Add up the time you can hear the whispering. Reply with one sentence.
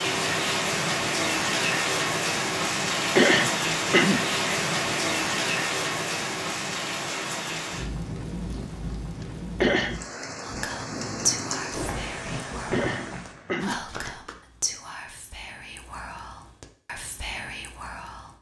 The whispering can be heard for 8 seconds in total.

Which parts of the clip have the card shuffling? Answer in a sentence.
The card shuffling can be heard from 13.6 to 14.3 s.